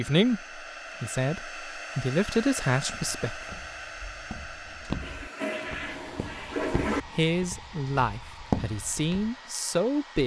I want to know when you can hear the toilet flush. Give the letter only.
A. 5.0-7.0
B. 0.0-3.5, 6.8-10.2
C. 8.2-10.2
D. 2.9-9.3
A.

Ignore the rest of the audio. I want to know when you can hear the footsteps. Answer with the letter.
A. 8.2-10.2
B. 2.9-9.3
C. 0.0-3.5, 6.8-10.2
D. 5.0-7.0
B.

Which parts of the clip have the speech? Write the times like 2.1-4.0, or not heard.
0.0-3.5, 6.8-10.2.